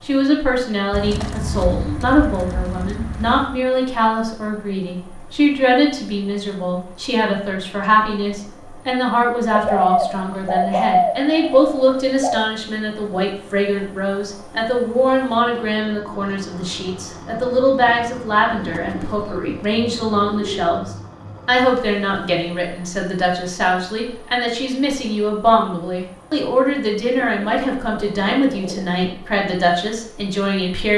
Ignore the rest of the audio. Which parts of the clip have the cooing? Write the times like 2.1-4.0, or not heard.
0.9-3.6, 9.5-12.4, 18.6-20.7, 27.1-29.0.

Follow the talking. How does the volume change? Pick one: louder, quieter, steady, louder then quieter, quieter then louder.
steady.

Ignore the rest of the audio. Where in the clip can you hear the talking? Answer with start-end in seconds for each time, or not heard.
0.0-30.9.